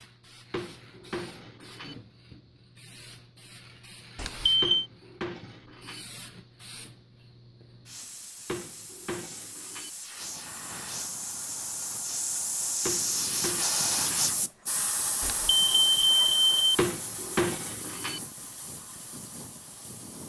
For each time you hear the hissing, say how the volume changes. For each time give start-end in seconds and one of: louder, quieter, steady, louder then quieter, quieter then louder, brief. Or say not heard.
0.0-20.2 louder then quieter.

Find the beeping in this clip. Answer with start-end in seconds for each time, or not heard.
4.2-4.8, 15.2-16.8.